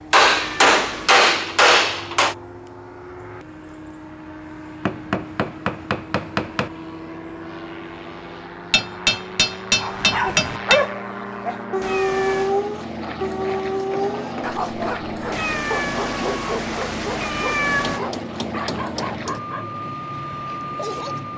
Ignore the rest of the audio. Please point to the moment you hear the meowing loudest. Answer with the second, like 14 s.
18 s.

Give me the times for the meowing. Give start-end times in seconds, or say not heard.
0.1-1.2, 11.8-12.6, 15.3-18.0.